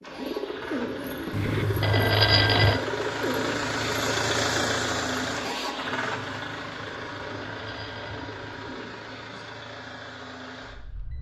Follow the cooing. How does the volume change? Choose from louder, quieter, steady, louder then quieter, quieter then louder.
quieter.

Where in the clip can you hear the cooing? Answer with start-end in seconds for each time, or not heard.
0.0-10.0.